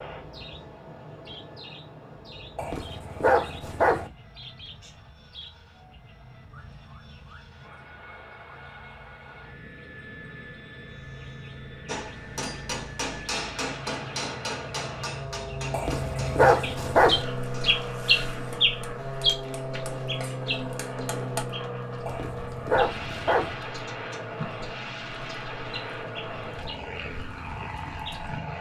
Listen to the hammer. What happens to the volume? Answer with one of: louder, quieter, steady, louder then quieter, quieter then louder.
quieter then louder.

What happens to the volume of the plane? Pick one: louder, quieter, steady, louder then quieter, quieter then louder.
louder.